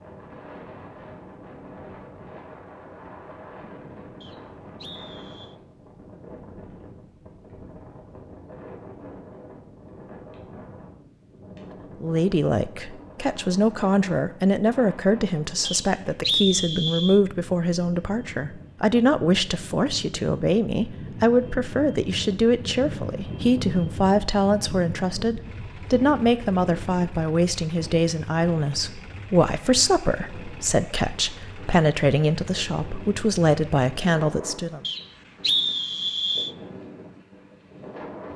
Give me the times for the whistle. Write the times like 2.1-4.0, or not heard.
4.2-5.5, 15.7-17.2, 34.8-36.5.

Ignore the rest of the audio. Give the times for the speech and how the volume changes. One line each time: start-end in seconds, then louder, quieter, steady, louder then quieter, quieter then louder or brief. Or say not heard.
12.0-34.9 steady.